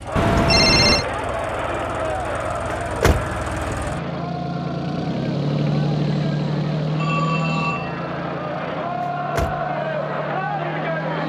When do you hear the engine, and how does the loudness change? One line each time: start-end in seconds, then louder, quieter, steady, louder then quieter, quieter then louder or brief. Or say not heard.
0.0-11.2 louder then quieter.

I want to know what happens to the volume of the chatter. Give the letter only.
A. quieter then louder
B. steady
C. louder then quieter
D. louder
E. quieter
A.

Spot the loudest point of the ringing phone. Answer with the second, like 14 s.
1 s.